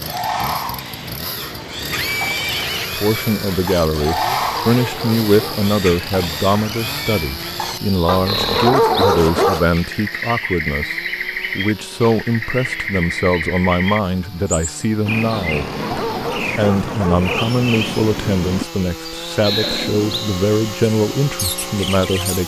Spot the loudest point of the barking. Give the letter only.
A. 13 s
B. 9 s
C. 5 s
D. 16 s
B.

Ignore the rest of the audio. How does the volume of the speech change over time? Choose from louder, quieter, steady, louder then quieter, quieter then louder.
steady.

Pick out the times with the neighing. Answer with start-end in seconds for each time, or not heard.
1.9-2.9, 19.4-20.3.